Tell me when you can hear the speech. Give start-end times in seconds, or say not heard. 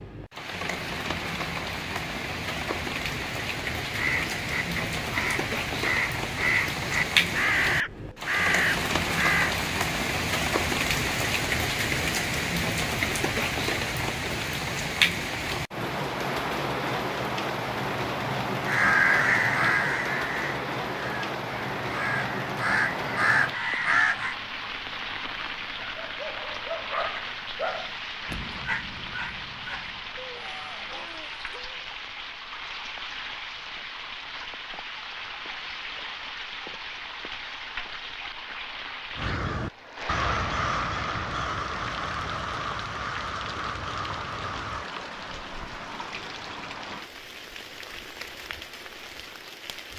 not heard.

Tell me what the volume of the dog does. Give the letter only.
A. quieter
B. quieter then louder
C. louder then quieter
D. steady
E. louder
A.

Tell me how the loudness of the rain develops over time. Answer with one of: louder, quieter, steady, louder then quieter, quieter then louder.
quieter.